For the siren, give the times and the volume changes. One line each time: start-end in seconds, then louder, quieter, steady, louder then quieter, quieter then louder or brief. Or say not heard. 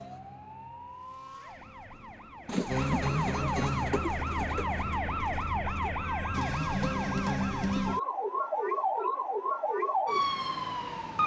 0.0-11.2 louder.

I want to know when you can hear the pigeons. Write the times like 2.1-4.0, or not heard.
2.5-5.0.